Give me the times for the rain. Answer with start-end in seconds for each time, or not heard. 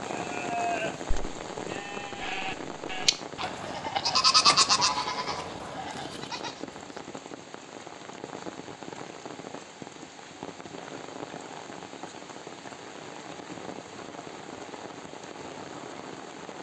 0.0-16.5.